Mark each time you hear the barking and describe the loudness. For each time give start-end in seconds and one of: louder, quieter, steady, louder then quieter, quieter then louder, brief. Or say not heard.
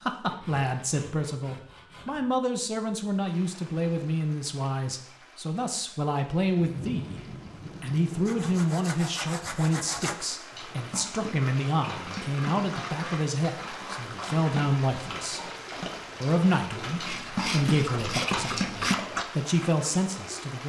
10.5-19.2 louder.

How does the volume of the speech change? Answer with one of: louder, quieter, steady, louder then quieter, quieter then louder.
steady.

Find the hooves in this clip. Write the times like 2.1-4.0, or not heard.
not heard.